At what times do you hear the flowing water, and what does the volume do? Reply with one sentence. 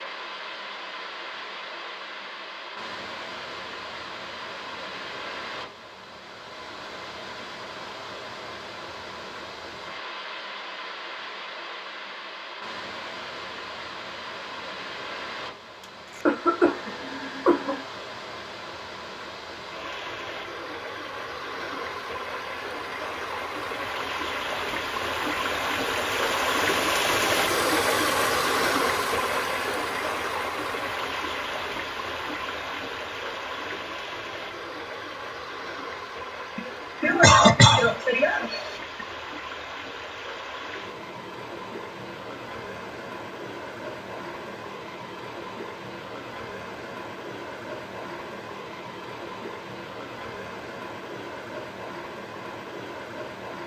You can hear the flowing water from 0.0 to 53.6 s, getting louder then quieter.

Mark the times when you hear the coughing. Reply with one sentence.
You can hear the coughing from 15.8 to 17.8 s and from 36.5 to 39.0 s.